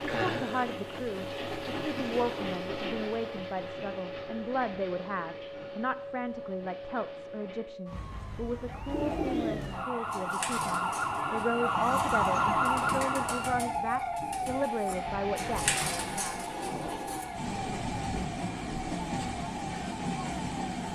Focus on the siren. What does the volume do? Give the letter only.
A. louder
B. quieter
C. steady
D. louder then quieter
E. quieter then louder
D.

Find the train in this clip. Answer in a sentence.
The train can be heard from 0.0 to 7.8 s and from 11.7 to 20.9 s.